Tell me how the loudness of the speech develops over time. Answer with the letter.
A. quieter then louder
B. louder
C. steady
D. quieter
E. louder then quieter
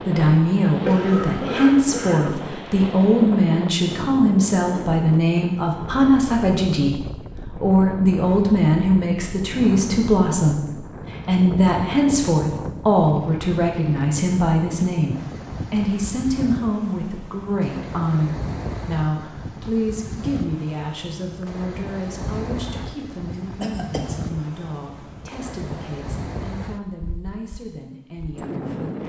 D.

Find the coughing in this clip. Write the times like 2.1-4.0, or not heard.
0.8-2.5, 23.6-24.1.